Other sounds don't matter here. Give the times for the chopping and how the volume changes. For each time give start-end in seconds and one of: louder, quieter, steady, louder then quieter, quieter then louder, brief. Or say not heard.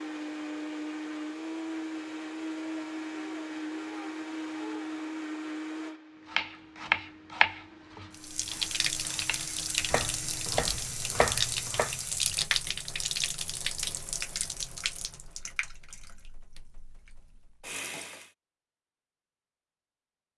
6.3-11.9 quieter then louder.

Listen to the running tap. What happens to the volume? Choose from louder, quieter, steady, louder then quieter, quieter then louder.
quieter.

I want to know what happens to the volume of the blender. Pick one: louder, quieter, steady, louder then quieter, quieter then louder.
quieter.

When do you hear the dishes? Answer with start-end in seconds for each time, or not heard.
not heard.